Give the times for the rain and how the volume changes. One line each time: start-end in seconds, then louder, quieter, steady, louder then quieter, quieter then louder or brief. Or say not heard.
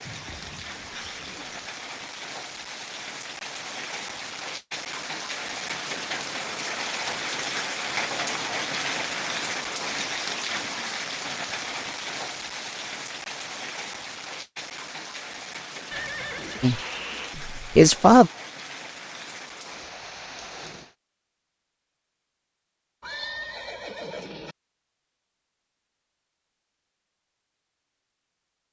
0.0-20.9 louder then quieter.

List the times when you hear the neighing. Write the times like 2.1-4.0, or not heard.
0.1-1.6, 15.9-17.4, 23.0-24.6.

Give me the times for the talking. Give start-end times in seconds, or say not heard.
16.6-18.3.